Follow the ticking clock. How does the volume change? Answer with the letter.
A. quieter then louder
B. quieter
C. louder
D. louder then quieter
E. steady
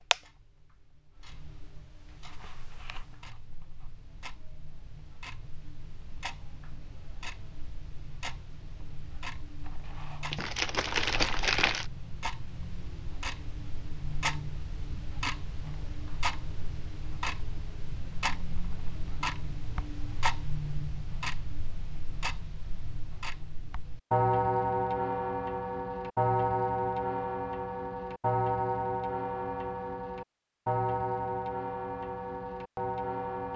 C.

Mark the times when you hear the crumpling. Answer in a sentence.
The crumpling can be heard from 10.3 to 11.8 s.